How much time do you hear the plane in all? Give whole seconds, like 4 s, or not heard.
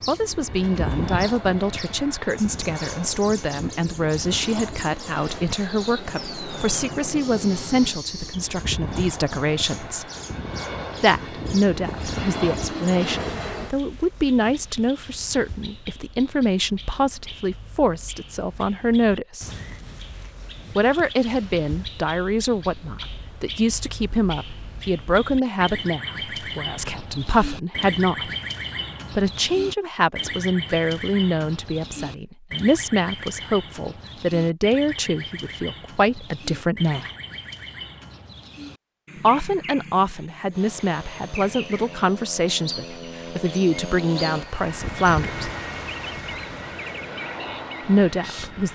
22 s.